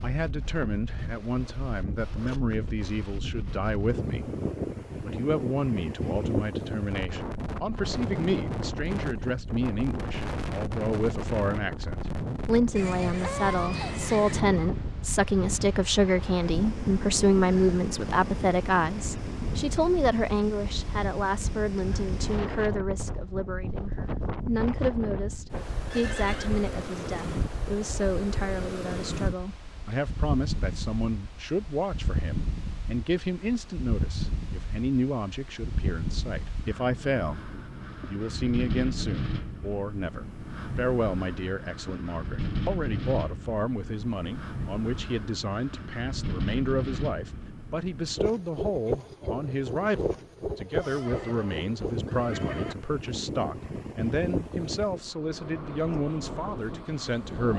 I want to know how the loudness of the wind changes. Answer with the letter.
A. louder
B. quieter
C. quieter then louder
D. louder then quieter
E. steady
E.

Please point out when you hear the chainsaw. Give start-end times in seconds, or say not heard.
not heard.